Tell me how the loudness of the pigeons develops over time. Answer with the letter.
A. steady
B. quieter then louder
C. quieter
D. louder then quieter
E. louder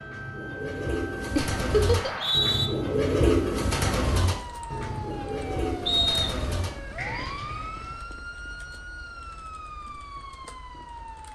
D.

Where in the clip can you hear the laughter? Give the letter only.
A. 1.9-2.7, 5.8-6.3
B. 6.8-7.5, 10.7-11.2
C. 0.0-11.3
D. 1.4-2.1
D.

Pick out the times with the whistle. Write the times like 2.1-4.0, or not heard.
1.9-2.7, 5.8-6.3.